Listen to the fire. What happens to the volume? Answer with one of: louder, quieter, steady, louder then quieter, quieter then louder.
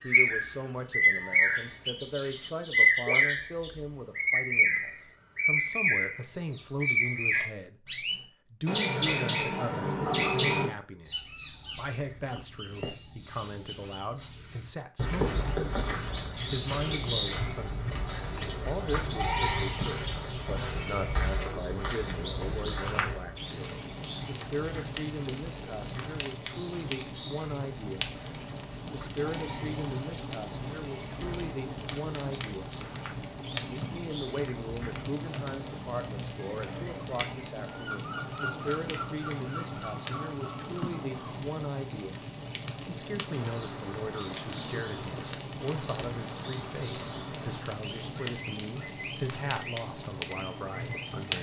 steady.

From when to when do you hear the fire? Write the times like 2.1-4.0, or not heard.
23.4-51.3.